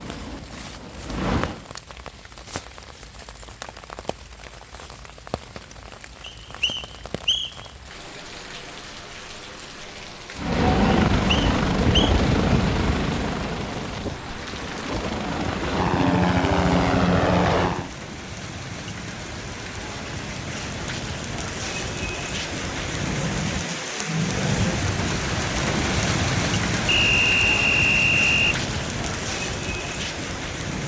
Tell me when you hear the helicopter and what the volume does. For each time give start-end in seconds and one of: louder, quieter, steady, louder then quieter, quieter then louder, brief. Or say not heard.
0.0-1.8 brief
10.3-17.9 quieter then louder.